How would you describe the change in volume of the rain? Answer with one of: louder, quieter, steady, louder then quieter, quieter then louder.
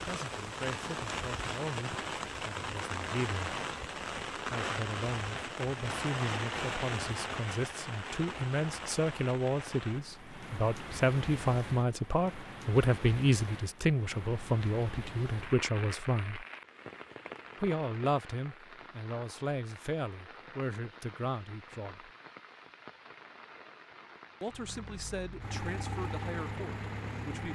quieter.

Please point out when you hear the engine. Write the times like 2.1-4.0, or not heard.
24.5-27.5.